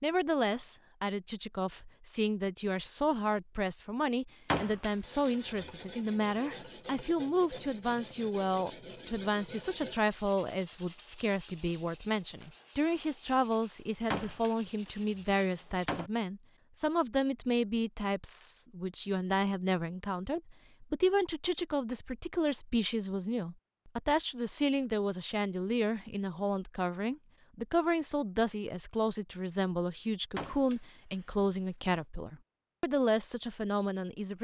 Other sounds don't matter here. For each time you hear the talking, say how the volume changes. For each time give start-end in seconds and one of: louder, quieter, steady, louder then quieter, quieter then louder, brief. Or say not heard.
0.0-34.3 steady.